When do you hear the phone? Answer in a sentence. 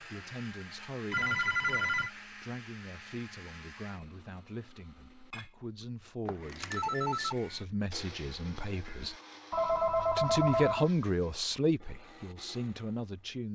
The phone can be heard from 1.1 to 2.1 s, from 6.2 to 7.3 s and from 9.5 to 10.9 s.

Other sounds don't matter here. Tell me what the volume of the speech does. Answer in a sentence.
The loudness of the speech goes up.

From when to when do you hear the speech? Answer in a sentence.
You can hear the speech from 0.0 to 9.2 s and from 10.2 to 13.5 s.